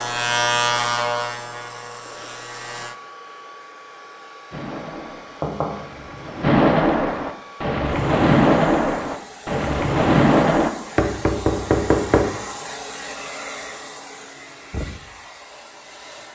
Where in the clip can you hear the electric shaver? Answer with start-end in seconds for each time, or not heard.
0.0-3.0.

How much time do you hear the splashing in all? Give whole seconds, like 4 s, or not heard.
6 s.